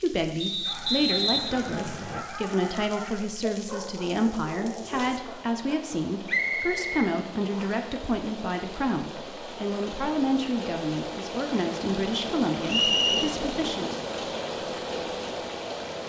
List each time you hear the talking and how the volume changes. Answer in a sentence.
You can hear the talking from 0.0 to 13.9 s, at a steady volume.